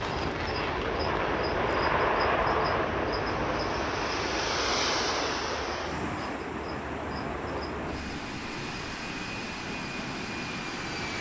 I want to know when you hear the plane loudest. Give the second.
2 s.